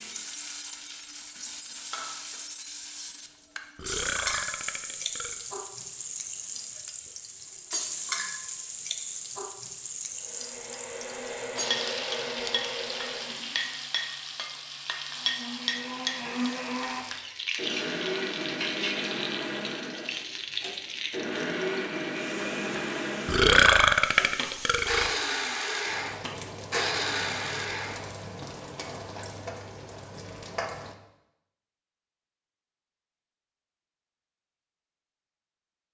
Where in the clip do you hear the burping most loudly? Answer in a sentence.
The volume of the burping peaks at 24 seconds.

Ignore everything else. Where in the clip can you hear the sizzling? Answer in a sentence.
You can hear the sizzling from 0.0 to 30.9 s.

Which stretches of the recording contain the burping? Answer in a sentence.
The burping can be heard from 3.8 to 5.4 s and from 23.2 to 25.1 s.